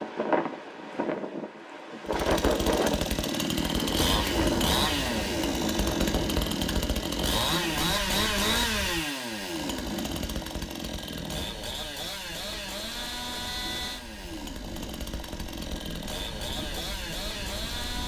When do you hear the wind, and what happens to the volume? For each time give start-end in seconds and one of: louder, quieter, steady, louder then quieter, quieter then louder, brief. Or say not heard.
0.0-18.0 quieter.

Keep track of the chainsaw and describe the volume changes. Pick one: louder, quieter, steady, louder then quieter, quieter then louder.
quieter.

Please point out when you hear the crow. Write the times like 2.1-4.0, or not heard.
not heard.